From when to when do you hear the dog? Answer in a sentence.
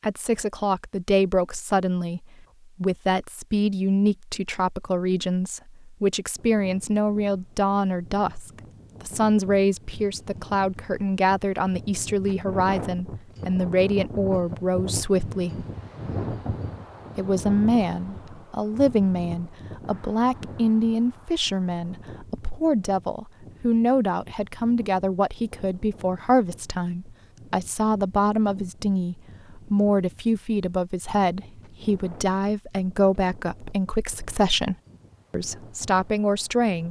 The dog can't be heard in this clip.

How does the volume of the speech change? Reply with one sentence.
The loudness of the speech stays about the same.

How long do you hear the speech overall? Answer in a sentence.
You can hear the speech for 35 seconds altogether.